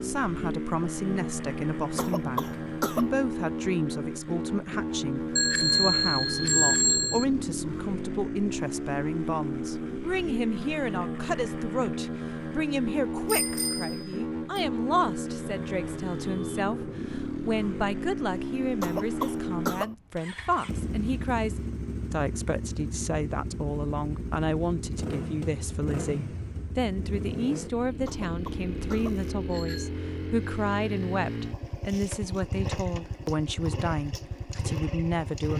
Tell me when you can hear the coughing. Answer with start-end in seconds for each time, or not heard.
1.9-3.1, 18.8-19.9, 28.1-29.2.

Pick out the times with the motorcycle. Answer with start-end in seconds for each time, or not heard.
0.0-35.5.